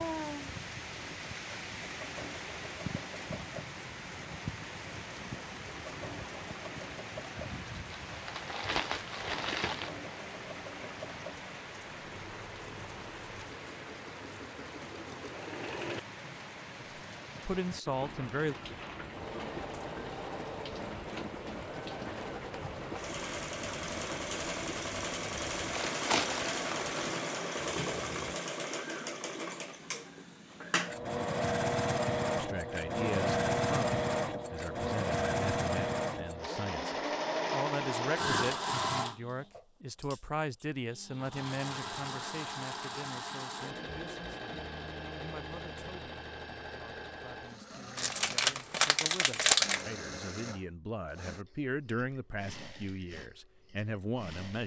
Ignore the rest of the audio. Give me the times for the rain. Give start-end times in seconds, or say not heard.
0.0-28.4.